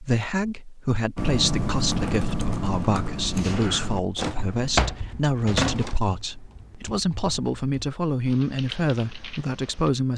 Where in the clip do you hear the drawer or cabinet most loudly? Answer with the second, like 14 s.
5 s.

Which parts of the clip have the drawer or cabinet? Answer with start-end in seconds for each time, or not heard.
3.4-6.0.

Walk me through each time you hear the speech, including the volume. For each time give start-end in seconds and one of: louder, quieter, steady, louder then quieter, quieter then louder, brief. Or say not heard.
0.0-10.1 steady.